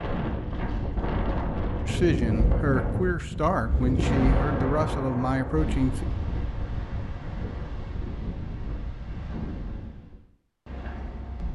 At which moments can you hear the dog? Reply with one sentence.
You can't hear the dog here.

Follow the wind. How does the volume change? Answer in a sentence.
The loudness of the wind goes down.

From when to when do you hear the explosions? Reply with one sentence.
You can hear the explosions from 4.0 to 6.2 s.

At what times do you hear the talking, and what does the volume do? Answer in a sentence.
The talking can be heard from 1.9 to 6.0 s, at a steady volume.